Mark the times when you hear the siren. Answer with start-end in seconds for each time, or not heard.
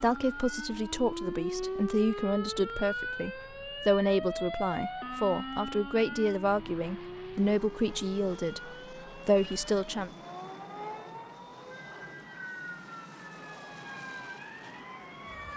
0.0-15.5.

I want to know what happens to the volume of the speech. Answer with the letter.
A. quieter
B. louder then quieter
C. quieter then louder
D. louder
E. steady
E.